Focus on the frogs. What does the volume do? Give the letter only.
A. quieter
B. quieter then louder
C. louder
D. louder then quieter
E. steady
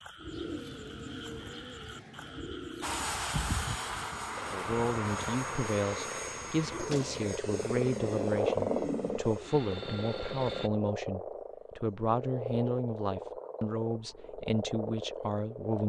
D.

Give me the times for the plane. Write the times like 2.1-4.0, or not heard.
2.8-10.7.